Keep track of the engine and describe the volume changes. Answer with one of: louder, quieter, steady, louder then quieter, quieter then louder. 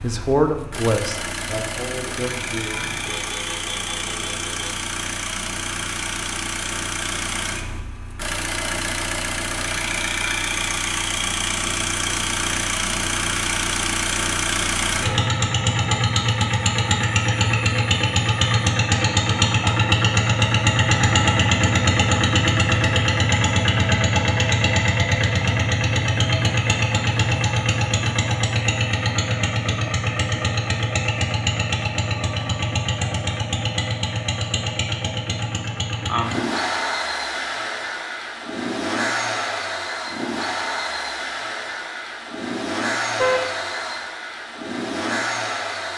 louder then quieter.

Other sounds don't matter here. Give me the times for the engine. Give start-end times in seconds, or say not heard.
0.0-45.9.